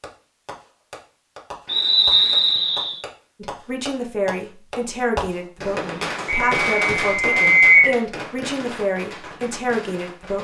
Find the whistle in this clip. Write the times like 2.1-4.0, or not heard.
1.6-3.0, 6.2-8.0.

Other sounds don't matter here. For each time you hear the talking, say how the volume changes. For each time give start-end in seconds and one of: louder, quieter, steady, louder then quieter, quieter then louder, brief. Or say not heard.
3.4-10.3 steady.